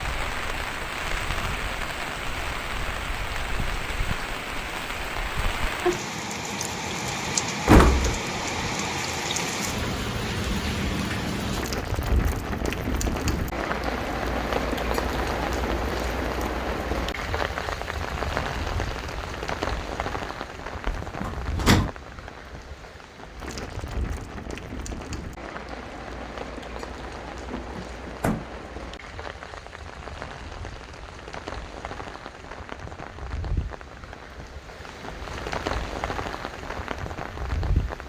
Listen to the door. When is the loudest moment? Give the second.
8 s.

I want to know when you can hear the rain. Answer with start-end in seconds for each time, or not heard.
0.0-38.0.